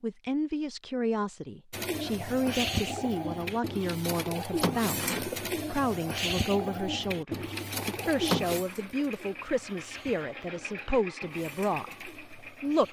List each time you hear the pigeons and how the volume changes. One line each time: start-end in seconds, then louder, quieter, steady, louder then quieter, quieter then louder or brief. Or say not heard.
1.7-12.8 quieter.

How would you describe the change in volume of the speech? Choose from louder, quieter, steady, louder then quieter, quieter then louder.
steady.